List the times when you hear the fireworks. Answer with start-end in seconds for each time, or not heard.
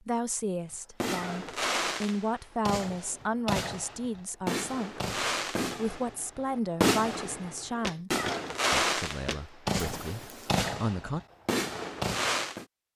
1.0-12.7.